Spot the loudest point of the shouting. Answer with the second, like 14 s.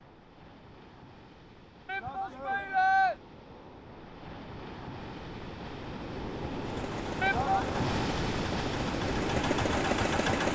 3 s.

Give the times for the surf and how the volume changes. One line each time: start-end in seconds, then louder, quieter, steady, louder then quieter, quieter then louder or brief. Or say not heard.
0.0-10.5 louder.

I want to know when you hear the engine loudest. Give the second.
10 s.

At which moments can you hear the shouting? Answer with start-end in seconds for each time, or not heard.
1.9-3.1, 7.2-7.7.